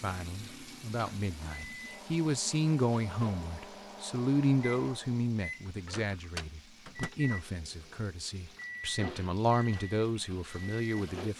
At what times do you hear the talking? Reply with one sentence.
You can hear the talking from 0.0 to 11.3 s.